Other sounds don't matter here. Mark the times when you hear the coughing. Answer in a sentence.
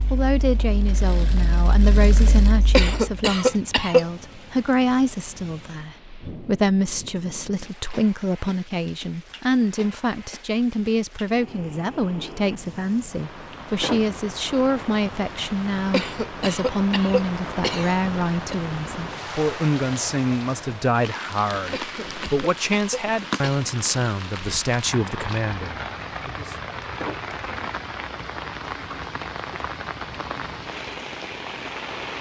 You can hear the coughing from 2.7 to 4.0 s, from 15.9 to 18.6 s and from 21.7 to 23.6 s.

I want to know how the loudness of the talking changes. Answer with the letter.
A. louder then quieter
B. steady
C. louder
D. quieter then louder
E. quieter
B.